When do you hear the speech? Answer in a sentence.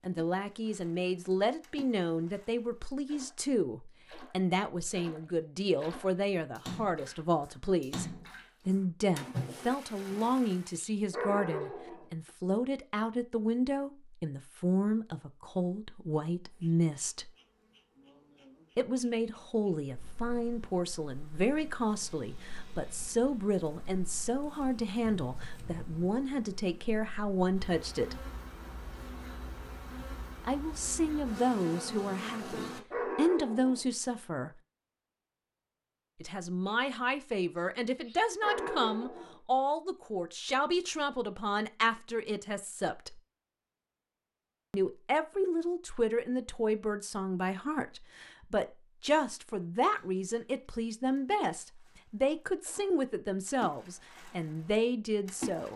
You can hear the speech from 0.0 to 8.1 s, from 8.7 to 17.3 s, from 18.8 to 28.2 s, from 30.4 to 34.5 s, from 36.2 to 43.2 s and from 44.7 to 55.7 s.